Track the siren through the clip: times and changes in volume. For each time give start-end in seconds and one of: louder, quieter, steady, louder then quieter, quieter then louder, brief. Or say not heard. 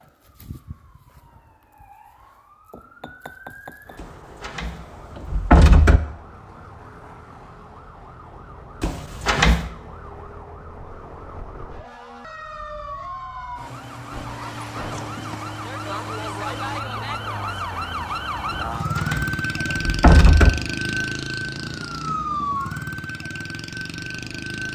0.0-24.7 louder.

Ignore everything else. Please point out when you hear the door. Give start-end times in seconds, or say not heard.
4.0-6.0, 8.8-9.7, 18.5-20.5.